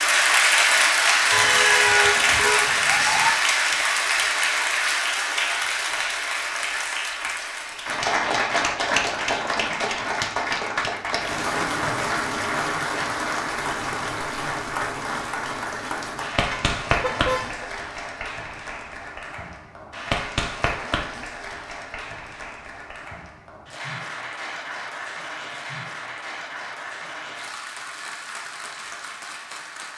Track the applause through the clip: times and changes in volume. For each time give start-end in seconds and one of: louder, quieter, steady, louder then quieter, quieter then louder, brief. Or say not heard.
0.0-29.9 quieter.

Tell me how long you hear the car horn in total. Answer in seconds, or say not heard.
3 s.